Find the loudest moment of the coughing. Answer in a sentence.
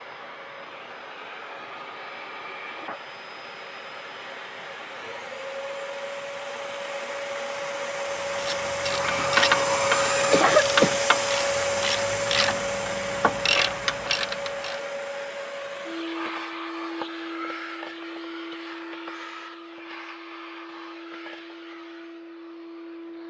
The loudest moment of the coughing is at 11 seconds.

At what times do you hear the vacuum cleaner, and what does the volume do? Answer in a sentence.
The vacuum cleaner can be heard from 0.0 to 23.2 s, getting louder then quieter.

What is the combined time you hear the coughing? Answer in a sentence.
You can hear the coughing for 2 seconds altogether.